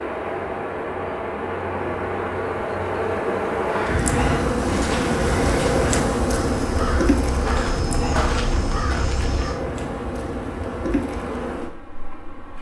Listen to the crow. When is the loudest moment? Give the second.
8 s.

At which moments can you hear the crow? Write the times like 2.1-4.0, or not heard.
3.6-9.6.